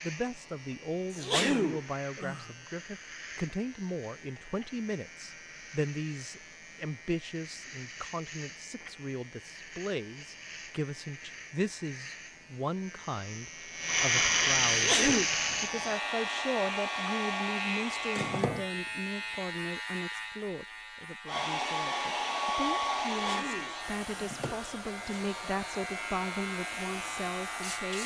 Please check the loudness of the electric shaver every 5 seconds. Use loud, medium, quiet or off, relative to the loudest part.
quiet, quiet, loud, loud, medium, medium.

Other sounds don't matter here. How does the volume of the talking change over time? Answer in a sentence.
The loudness of the talking stays about the same.